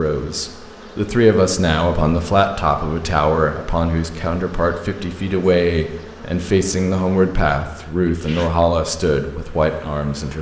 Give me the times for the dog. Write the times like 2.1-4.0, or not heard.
not heard.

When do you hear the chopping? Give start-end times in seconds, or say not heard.
not heard.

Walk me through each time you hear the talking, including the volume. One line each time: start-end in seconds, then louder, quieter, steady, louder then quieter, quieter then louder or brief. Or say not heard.
0.0-10.3 steady.